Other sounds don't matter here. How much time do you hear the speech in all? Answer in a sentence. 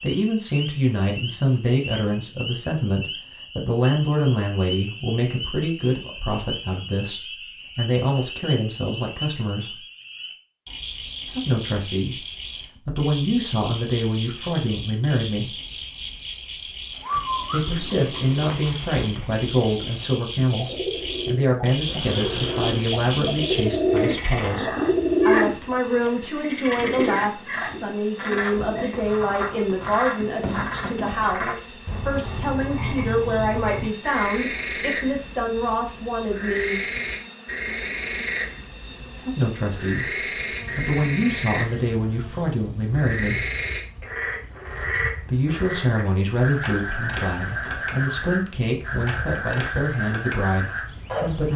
The speech can be heard for 44 seconds in total.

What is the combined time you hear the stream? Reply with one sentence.
The stream can't be heard in this clip.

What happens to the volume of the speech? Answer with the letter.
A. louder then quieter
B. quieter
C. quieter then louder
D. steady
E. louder
D.